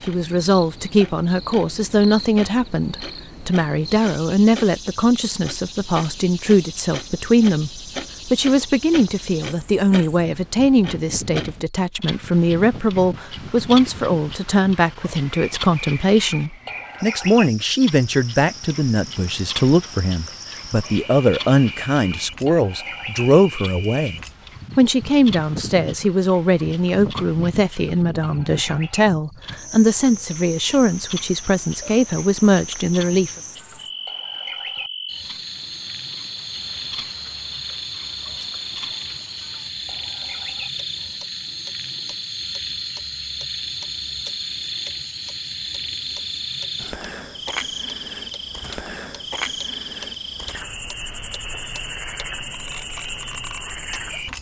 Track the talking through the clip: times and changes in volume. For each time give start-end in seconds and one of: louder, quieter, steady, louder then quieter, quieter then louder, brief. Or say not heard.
0.1-33.3 steady.